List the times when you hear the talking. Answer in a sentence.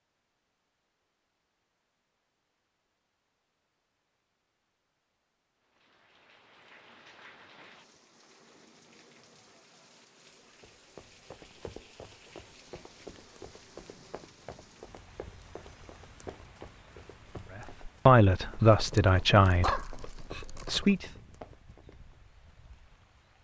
The talking can be heard from 17.6 to 21.1 s.